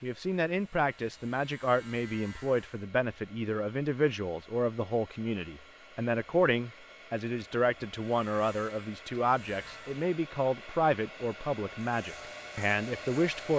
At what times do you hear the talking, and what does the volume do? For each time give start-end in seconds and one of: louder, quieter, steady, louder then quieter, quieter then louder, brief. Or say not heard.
0.0-13.5 steady.